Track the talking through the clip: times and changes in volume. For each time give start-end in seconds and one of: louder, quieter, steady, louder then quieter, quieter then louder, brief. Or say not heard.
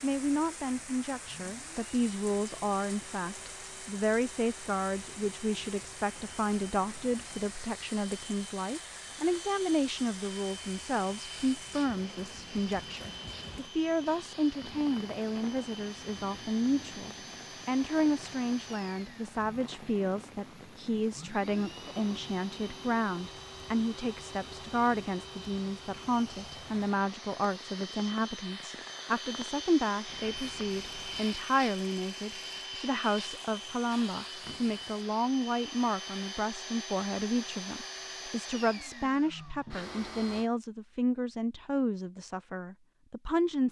0.0-43.6 steady.